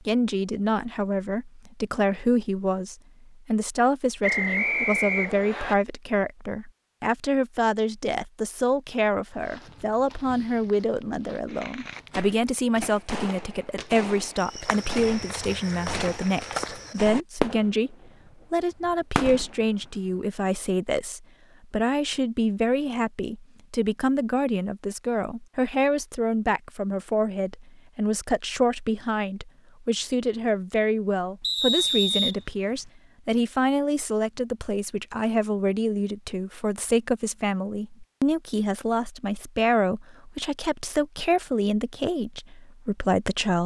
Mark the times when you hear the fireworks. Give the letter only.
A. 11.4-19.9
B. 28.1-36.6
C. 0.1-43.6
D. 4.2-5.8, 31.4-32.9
A.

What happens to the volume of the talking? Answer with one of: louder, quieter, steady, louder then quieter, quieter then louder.
steady.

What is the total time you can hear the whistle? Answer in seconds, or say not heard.
3 s.